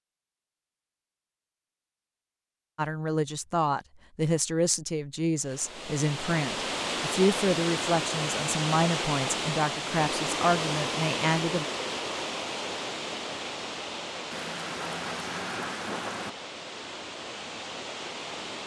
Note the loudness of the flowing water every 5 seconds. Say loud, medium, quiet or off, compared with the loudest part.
off, loud, loud, medium.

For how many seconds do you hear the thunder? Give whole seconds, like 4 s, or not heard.
2 s.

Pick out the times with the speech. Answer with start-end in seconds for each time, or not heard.
2.8-11.7.